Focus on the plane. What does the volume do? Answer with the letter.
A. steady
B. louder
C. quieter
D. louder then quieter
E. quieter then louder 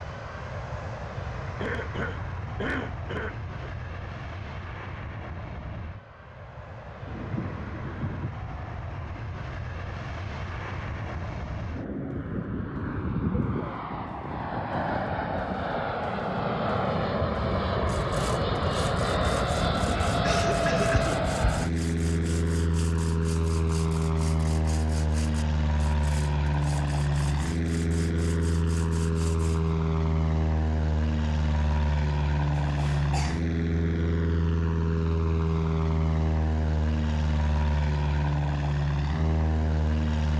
B.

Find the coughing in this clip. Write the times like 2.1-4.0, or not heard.
1.6-3.7, 20.2-21.2, 32.6-33.5.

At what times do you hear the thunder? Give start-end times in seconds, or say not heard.
7.0-8.3.